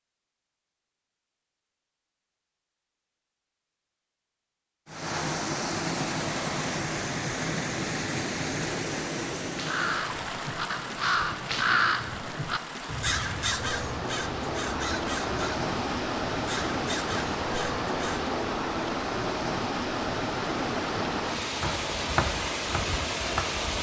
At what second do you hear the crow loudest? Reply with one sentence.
The loudest moment of the crow is at 12 seconds.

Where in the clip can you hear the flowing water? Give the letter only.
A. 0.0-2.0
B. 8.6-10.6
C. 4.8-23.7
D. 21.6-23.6
C.